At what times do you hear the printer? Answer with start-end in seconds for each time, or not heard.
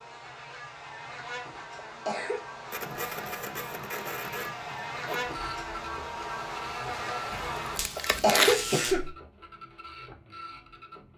2.7-11.1.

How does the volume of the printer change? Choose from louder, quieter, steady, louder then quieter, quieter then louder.
quieter.